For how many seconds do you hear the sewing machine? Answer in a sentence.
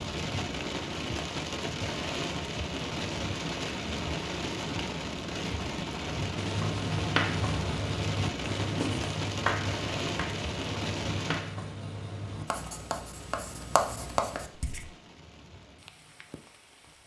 The sewing machine can't be heard in this clip.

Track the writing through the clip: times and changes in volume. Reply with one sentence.
The writing can be heard from 6.3 to 14.8 s, getting quieter then louder.